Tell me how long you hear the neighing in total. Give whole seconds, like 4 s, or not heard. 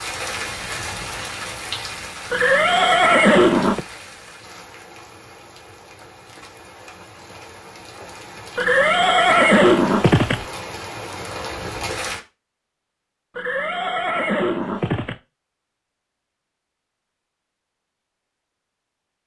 5 s.